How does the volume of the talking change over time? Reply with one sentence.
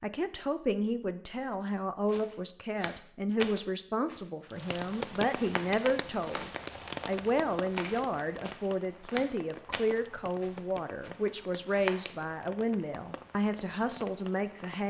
The loudness of the talking stays about the same.